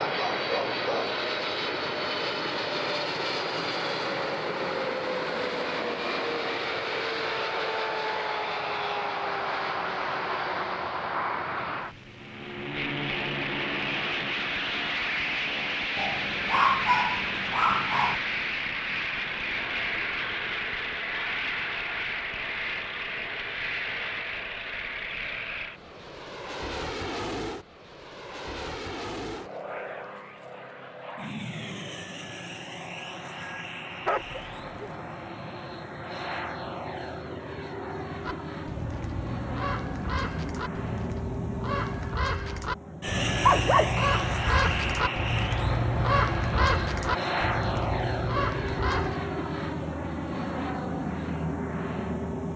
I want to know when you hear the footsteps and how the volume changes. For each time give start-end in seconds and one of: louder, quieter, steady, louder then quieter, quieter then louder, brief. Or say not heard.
not heard.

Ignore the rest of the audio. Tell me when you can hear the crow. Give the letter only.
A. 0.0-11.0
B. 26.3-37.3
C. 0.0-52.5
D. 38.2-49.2
D.